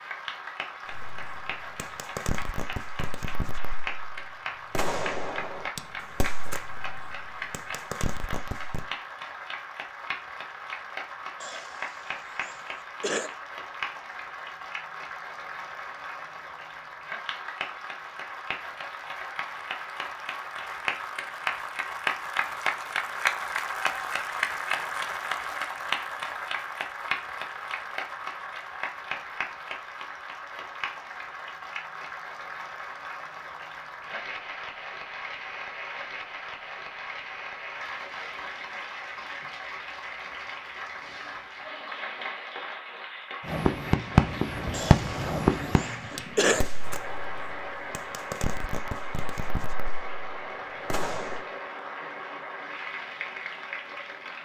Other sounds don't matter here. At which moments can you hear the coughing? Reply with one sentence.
The coughing can be heard from 11.4 to 13.3 s and from 44.7 to 46.6 s.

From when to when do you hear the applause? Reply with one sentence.
You can hear the applause from 0.0 to 54.3 s.